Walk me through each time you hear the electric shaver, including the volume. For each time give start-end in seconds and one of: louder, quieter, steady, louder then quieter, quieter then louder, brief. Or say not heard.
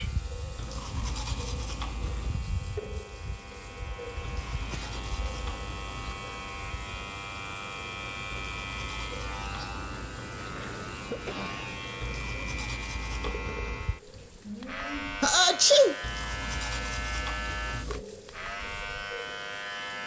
0.0-20.0 louder.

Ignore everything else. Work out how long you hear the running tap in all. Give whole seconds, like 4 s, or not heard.
20 s.